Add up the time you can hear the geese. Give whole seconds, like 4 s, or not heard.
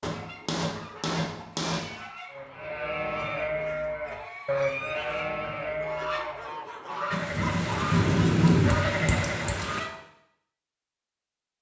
10 s.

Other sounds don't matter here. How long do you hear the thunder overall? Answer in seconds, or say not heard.
3 s.